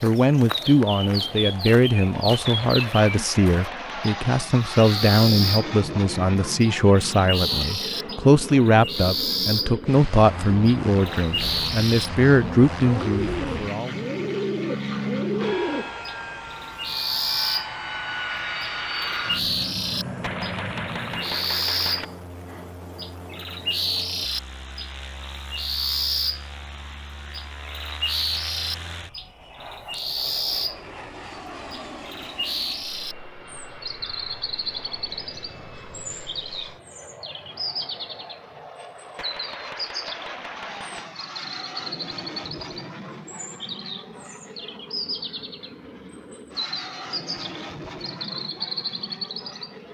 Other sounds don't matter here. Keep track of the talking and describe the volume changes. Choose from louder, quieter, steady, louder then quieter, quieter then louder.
steady.